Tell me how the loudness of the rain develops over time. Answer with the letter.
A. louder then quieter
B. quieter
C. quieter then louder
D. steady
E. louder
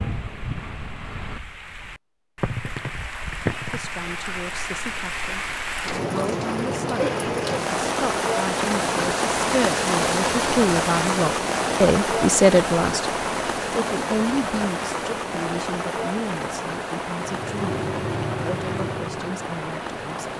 A.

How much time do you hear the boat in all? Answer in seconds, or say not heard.
3 s.